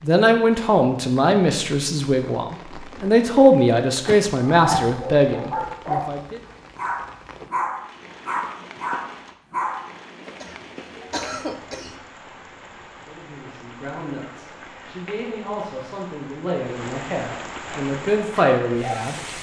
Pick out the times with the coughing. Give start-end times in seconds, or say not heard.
4.0-5.0, 10.2-12.0.